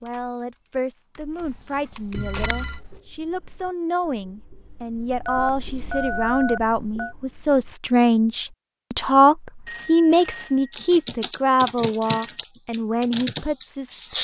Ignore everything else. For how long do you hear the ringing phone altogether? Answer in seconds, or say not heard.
4 s.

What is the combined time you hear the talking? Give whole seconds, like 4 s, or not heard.
14 s.